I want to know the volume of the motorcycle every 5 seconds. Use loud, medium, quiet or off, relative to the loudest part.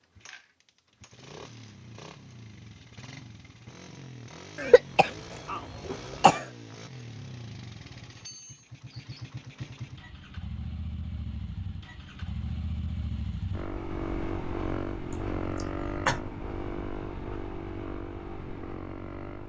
medium, medium, loud, loud.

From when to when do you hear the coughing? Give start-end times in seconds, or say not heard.
4.5-6.5, 15.1-16.2.